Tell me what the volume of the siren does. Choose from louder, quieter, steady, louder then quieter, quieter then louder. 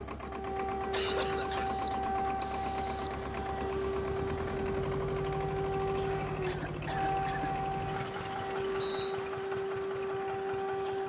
steady.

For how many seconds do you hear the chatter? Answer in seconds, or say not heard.
not heard.